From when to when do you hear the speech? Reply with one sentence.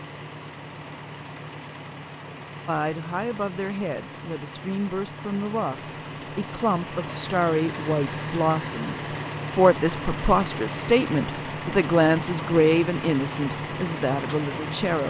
The speech can be heard from 2.6 to 15.0 s.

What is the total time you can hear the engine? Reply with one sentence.
The engine can be heard for 15 seconds in total.